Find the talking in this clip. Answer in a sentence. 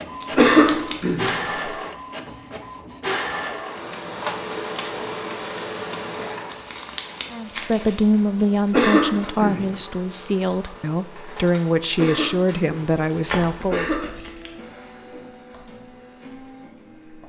You can hear the talking from 7.3 to 13.8 s.